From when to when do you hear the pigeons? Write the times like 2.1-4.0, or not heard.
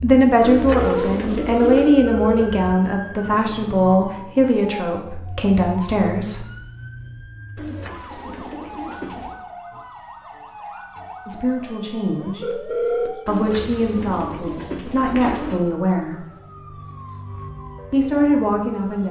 0.4-1.9, 7.5-9.3, 13.2-15.7.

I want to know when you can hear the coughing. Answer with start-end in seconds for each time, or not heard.
not heard.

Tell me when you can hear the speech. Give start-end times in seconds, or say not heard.
0.0-6.5, 11.2-16.2, 17.9-19.0.